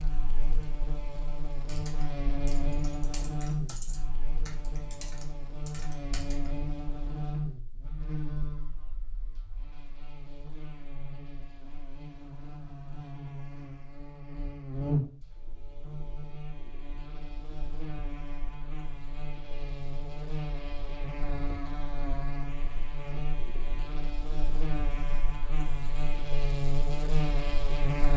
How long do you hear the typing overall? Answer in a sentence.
You can hear the typing for 5 seconds altogether.